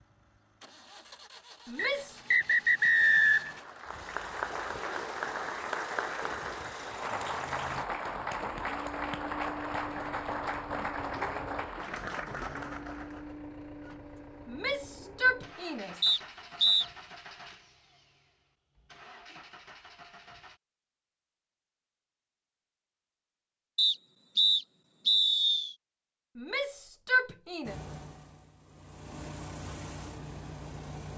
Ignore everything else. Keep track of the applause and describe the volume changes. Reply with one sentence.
The volume of the applause stays about the same.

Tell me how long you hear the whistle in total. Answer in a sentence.
You can hear the whistle for 5 seconds altogether.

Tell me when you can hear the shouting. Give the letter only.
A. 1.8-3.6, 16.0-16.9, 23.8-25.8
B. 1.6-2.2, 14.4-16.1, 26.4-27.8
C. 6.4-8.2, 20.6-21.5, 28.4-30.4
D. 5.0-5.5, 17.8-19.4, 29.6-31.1
B.